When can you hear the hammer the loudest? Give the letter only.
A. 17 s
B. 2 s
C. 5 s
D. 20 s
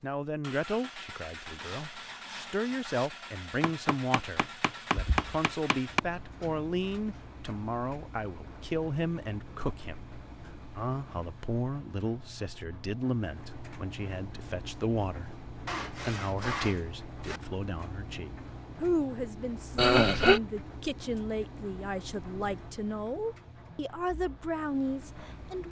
C.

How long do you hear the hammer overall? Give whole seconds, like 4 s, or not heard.
3 s.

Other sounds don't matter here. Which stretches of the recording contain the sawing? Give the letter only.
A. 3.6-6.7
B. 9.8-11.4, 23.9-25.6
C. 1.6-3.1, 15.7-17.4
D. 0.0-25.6
C.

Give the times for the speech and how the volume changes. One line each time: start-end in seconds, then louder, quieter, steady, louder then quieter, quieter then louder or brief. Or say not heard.
0.0-25.6 steady.